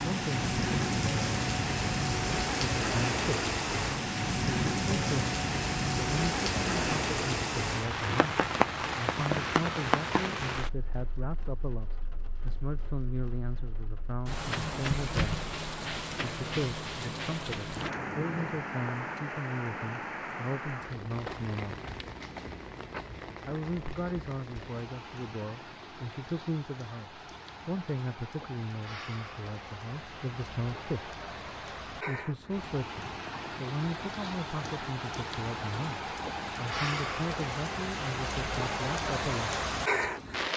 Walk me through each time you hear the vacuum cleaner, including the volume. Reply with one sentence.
The vacuum cleaner can't be heard in this clip.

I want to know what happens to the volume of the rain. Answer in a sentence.
The volume of the rain goes down, then up.